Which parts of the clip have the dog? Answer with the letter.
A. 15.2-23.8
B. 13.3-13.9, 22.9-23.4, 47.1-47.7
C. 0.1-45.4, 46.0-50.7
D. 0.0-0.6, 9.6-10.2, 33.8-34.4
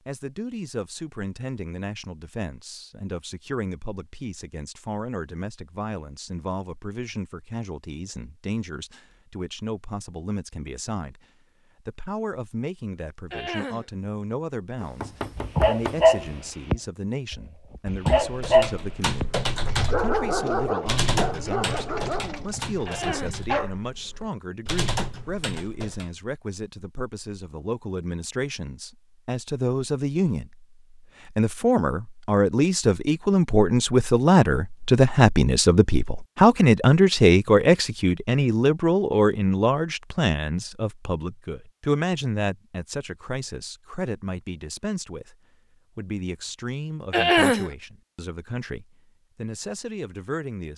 A.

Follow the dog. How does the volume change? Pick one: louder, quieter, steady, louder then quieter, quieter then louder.
quieter.